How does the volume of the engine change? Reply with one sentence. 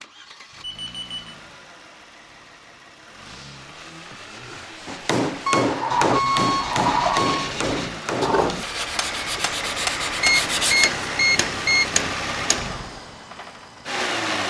The loudness of the engine goes up.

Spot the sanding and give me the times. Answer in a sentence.
The sanding can be heard from 3.2 to 10.8 s.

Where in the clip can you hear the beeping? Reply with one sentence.
The beeping can be heard from 0.6 to 1.2 s, from 5.5 to 7.5 s and from 10.2 to 11.9 s.